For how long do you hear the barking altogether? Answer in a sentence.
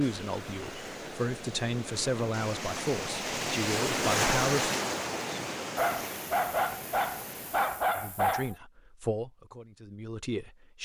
You can hear the barking for 3 seconds altogether.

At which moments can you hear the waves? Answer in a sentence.
The waves can be heard from 0.0 to 8.0 s.